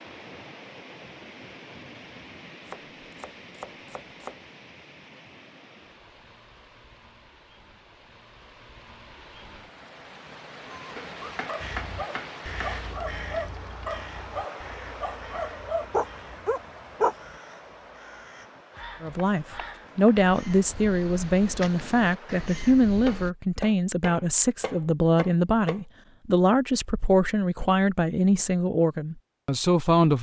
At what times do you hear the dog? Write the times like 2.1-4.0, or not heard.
10.7-17.1.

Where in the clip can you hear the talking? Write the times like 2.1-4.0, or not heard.
19.0-30.1.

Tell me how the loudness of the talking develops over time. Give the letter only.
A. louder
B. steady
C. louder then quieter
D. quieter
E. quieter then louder
B.